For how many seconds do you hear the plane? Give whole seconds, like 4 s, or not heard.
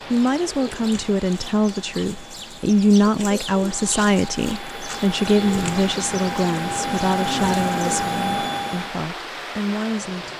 9 s.